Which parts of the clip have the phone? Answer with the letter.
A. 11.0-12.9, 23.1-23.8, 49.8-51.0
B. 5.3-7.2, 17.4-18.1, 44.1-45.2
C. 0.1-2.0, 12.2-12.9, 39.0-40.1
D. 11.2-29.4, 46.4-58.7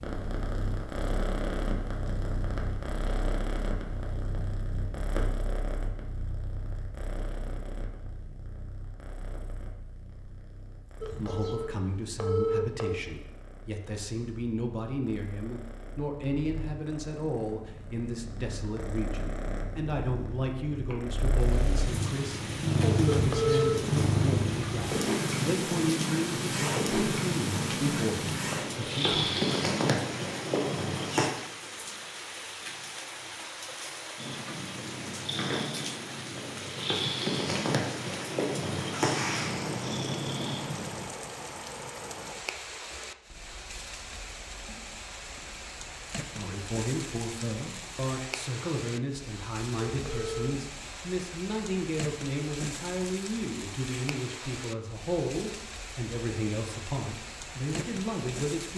A.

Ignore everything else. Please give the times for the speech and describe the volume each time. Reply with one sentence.
You can hear the speech from 11.2 to 29.4 s, at a steady volume; and from 46.4 to 58.7 s, at a steady volume.